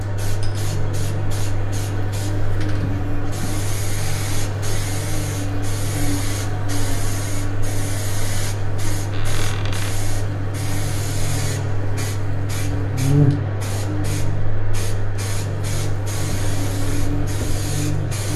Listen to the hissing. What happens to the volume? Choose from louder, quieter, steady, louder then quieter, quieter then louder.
steady.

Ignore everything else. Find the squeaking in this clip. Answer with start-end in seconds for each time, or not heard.
9.1-10.0.